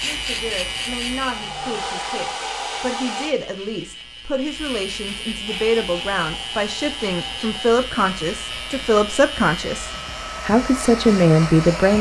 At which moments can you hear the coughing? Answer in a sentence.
The coughing can't be heard in this clip.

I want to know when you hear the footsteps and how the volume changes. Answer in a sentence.
The footsteps can't be heard in this clip.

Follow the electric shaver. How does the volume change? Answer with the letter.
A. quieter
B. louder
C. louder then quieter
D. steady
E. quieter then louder
E.